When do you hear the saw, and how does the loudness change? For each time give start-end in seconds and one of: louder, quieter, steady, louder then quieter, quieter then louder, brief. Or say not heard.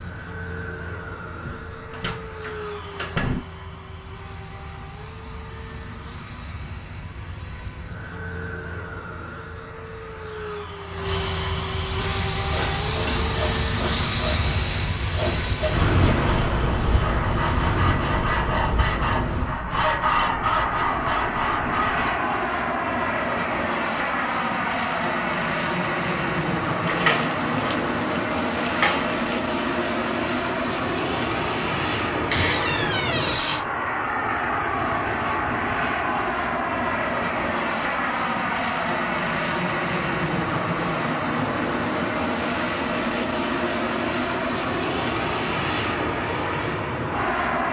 11.9-22.1 louder.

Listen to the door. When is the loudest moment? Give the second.
33 s.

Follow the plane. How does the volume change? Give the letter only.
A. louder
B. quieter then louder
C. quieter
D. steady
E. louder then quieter
A.